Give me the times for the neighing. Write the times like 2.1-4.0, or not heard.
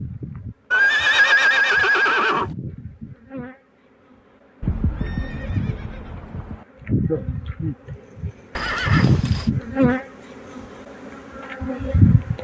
0.7-2.5, 4.6-6.7, 8.6-9.5.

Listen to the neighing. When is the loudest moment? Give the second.
1 s.